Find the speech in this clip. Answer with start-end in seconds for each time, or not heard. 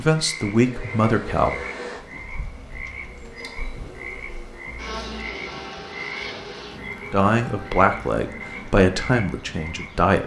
0.0-1.6, 7.1-10.2.